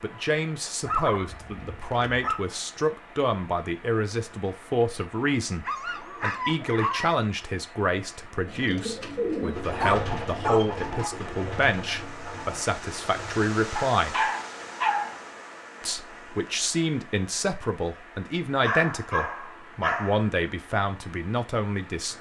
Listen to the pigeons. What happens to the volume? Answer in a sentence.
The volume of the pigeons goes down.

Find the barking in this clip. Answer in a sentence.
The barking can be heard from 0.8 to 2.4 s, from 5.7 to 7.2 s, from 9.4 to 11.2 s, from 13.8 to 15.2 s and from 18.6 to 20.3 s.